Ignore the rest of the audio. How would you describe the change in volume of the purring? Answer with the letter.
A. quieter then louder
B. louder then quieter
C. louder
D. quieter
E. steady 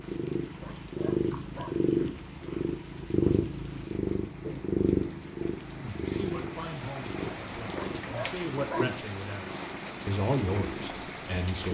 D.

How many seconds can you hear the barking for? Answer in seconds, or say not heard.
3 s.